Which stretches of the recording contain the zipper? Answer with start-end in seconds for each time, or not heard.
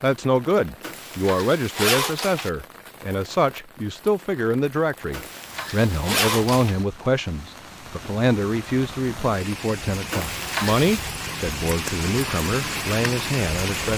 0.8-2.5, 5.1-6.8, 10.1-11.1.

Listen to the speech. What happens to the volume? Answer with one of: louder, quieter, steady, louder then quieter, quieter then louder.
steady.